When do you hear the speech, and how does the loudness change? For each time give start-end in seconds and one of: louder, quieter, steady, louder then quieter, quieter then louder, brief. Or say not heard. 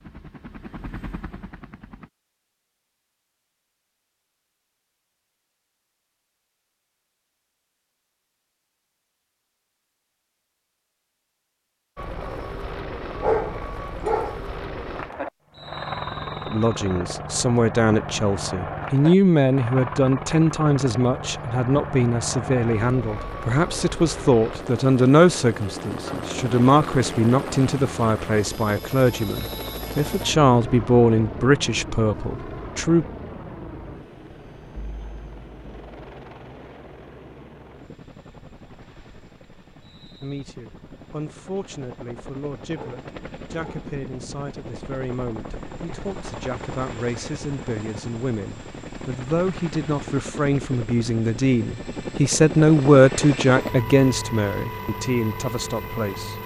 16.4-33.0 steady
40.2-56.4 louder.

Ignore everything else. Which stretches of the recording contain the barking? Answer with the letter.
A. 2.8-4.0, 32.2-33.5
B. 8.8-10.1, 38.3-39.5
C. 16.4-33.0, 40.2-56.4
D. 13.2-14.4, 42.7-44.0
D.